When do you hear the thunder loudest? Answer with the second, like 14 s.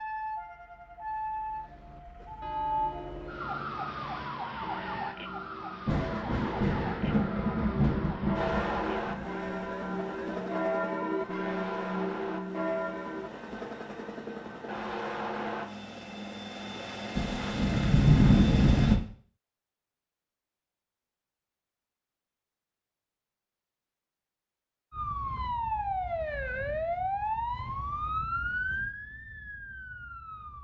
18 s.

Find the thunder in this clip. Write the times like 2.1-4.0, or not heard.
5.8-9.3, 17.1-18.9.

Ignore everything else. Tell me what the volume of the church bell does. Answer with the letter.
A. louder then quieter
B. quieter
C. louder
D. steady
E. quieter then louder
C.